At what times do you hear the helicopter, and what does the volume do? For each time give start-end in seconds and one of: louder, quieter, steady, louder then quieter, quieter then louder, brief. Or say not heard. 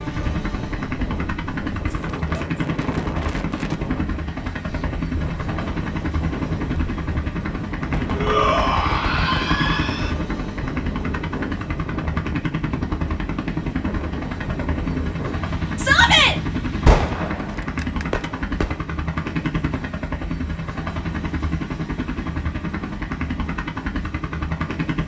0.0-25.0 steady.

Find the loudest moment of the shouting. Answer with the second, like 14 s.
16 s.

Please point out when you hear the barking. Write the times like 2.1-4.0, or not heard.
not heard.